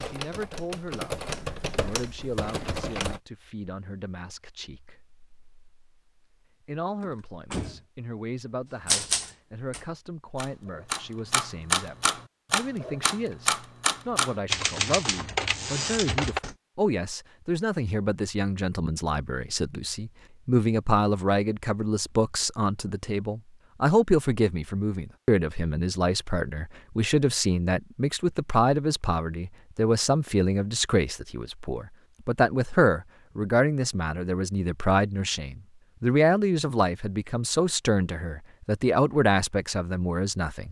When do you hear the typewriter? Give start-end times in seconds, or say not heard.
0.0-3.2, 8.8-16.6.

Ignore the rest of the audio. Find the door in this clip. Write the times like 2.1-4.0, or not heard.
7.0-7.8.